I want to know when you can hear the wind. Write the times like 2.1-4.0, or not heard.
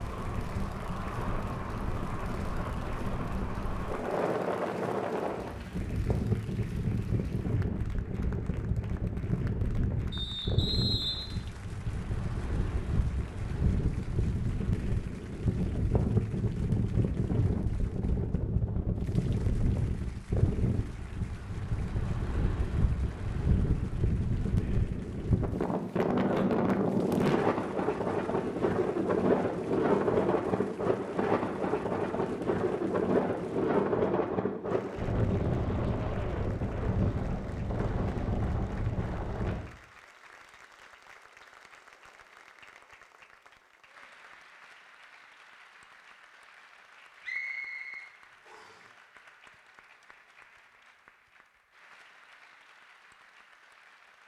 0.0-39.7.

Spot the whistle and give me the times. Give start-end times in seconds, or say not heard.
10.1-11.3, 47.2-48.8.